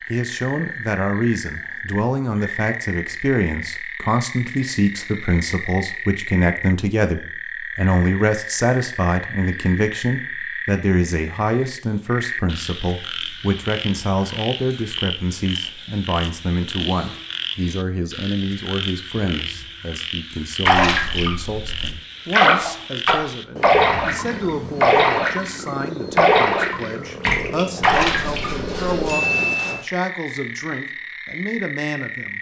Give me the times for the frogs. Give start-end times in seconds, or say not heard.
0.0-32.3.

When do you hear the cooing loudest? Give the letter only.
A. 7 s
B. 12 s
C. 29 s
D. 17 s
C.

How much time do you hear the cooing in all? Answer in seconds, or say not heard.
2 s.